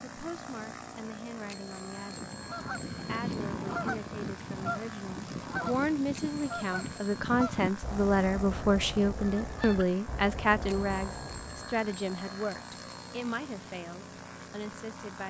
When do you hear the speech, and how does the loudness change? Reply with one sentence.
You can hear the speech briefly from 0.0 to 2.3 s; and from 3.0 to 15.2 s, getting louder then quieter.